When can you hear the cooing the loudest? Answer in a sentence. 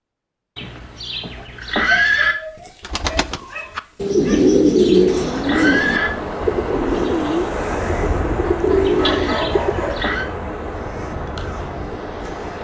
The loudest moment of the cooing is at 5 seconds.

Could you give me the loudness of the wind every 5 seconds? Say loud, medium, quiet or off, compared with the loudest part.
off, loud, loud.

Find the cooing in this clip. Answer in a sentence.
You can hear the cooing from 2.8 to 9.9 s.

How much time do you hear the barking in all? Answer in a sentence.
The barking can be heard for 4 seconds in total.